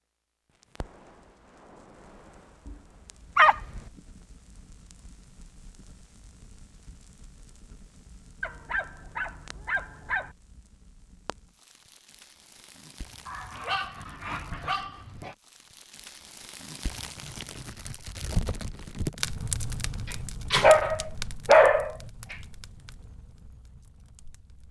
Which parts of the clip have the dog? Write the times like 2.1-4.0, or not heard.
3.4-3.8, 8.4-10.3, 13.2-15.3, 20.5-22.4.